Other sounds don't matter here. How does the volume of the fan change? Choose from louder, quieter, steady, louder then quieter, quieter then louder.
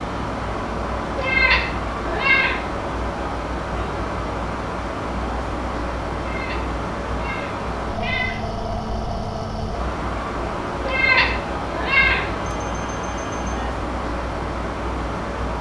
steady.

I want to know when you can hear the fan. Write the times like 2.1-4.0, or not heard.
0.0-15.5.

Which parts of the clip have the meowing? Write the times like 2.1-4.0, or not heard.
1.1-2.6, 6.2-8.5, 10.8-12.4.